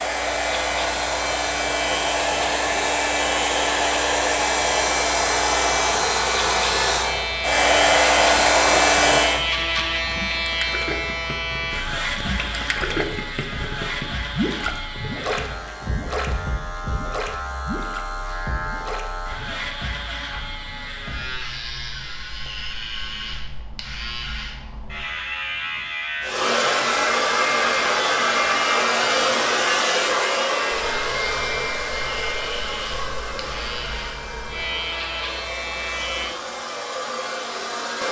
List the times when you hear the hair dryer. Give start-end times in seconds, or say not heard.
0.0-9.4, 26.2-38.0.